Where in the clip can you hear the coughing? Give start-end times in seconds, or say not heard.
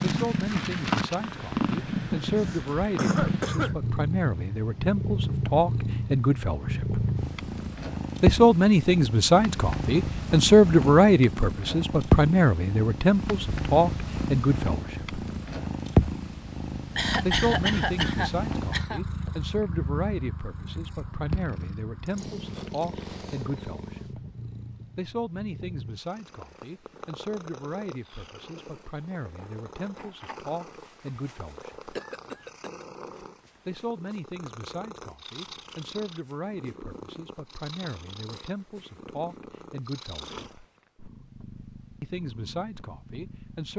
2.4-3.8, 16.9-19.0, 31.9-32.9.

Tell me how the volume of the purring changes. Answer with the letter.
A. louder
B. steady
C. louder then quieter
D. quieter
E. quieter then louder
D.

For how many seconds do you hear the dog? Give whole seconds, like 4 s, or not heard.
not heard.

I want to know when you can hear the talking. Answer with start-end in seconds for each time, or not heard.
0.0-7.0, 8.2-15.2, 17.2-24.2, 24.9-31.9, 33.6-40.6, 42.0-43.7.